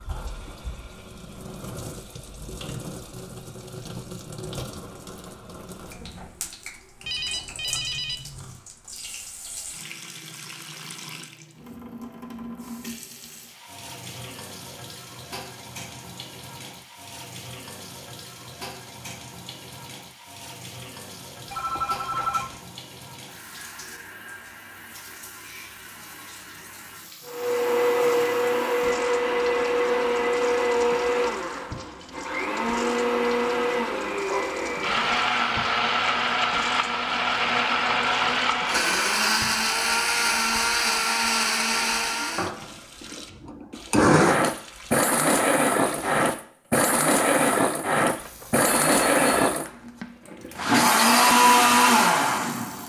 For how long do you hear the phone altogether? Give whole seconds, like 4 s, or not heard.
4 s.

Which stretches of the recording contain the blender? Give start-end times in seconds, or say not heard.
27.2-52.8.